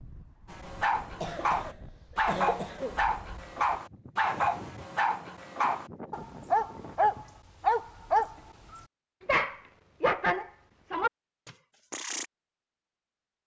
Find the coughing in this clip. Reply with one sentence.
The coughing can be heard from 1.0 to 3.0 s.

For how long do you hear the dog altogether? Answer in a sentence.
The dog can be heard for 12 seconds in total.